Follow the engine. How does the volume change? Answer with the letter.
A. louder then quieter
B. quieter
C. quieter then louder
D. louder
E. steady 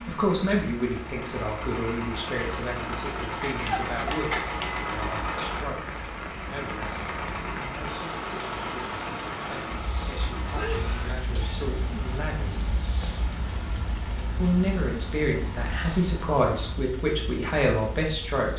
B.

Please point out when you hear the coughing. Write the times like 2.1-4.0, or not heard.
3.4-4.6, 10.4-11.7.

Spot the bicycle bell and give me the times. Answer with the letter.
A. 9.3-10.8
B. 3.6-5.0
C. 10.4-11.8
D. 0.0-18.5
B.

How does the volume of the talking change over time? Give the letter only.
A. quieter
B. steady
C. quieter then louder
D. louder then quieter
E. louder
C.